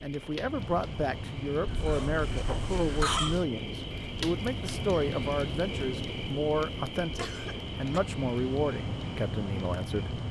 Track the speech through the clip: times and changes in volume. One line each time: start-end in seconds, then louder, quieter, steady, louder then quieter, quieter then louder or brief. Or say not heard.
0.0-10.2 steady.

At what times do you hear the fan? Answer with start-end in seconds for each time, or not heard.
0.0-10.2.